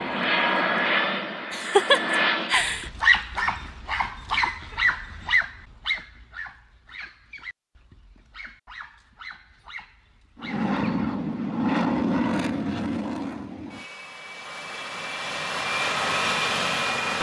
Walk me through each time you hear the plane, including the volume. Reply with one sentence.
You can hear the plane briefly from 0.0 to 2.5 s; and from 10.3 to 17.1 s, getting quieter then louder.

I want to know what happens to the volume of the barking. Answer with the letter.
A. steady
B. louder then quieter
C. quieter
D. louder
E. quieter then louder
C.